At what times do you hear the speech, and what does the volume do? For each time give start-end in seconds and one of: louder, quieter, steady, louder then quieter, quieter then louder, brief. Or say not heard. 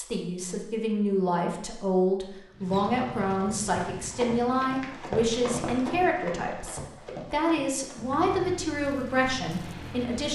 0.0-10.3 steady.